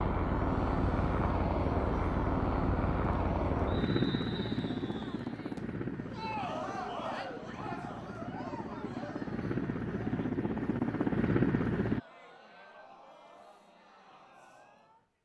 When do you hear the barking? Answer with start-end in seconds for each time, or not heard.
not heard.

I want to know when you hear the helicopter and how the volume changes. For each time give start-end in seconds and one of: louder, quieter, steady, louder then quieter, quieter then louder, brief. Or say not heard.
0.0-12.0 quieter then louder.